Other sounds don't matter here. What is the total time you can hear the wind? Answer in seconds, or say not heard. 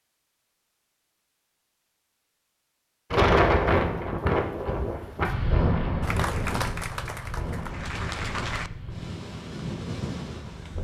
8 s.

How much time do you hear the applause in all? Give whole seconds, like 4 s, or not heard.
3 s.